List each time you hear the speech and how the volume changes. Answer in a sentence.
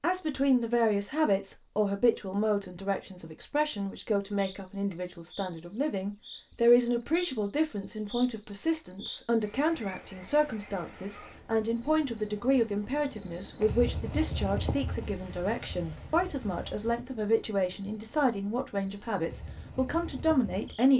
The speech can be heard from 0.0 to 20.9 s, at a steady volume.